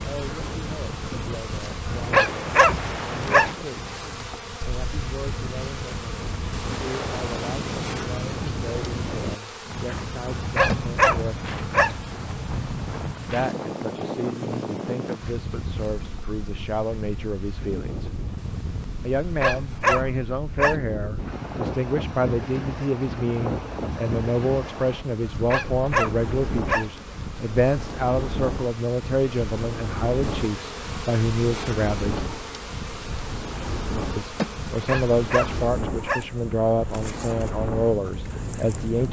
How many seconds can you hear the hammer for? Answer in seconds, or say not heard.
not heard.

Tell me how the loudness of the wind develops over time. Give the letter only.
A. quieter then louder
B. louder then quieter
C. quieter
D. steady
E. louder
D.